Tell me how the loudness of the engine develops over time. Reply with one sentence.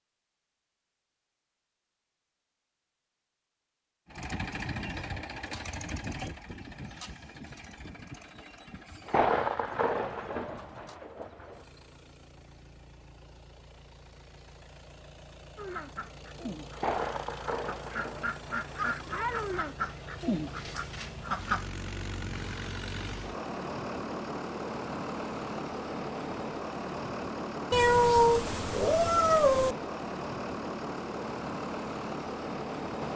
The volume of the engine goes down, then up.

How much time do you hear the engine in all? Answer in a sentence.
The engine can be heard for 29 seconds in total.